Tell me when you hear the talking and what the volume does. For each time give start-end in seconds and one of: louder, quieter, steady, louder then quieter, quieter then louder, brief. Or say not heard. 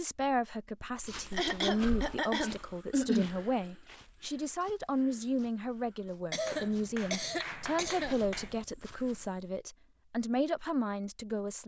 0.0-11.6 steady.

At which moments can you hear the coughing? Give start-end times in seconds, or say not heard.
1.3-3.3, 6.3-8.2.